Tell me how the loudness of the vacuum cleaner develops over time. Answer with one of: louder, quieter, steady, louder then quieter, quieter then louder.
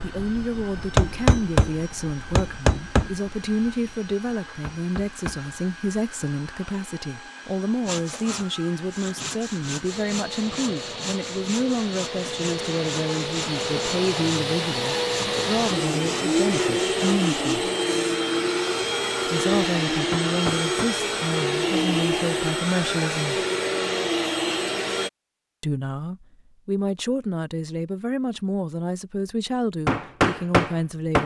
louder.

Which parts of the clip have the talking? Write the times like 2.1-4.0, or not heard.
0.0-17.7, 19.2-23.4, 25.6-31.2.